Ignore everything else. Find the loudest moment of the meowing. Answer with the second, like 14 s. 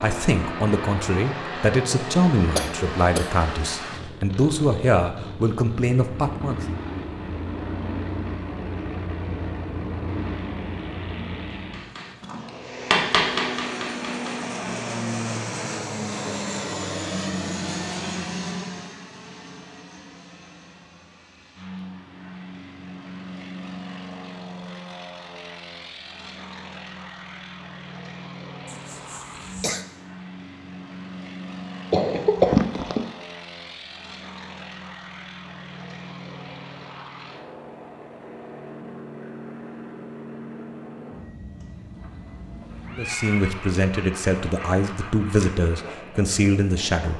43 s.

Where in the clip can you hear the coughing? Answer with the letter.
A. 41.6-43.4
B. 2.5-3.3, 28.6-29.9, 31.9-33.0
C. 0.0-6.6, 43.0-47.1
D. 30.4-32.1
B.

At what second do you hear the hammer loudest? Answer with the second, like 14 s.
13 s.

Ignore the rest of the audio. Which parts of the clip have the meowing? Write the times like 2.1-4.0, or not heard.
41.6-43.4.